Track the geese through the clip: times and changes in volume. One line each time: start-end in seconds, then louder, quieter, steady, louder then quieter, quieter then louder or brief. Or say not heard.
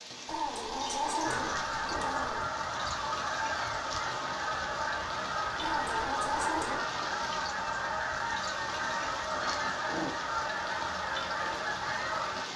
1.2-12.4 steady.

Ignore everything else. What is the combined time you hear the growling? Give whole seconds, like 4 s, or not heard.
5 s.